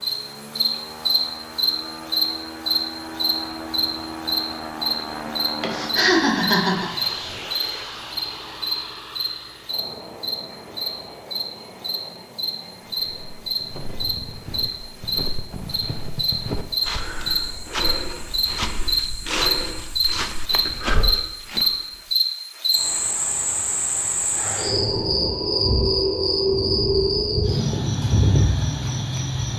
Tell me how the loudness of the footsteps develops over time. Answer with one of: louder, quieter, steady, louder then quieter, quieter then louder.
louder.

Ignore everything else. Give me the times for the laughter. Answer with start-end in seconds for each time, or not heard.
5.6-6.9.